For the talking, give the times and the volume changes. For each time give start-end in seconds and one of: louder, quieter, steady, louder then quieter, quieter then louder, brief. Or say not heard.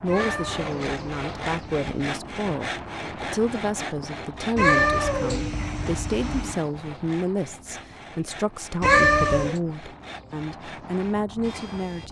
0.0-12.0 steady.